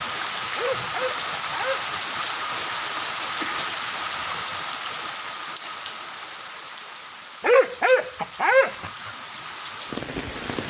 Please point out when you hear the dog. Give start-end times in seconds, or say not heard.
0.6-2.0, 7.4-9.1.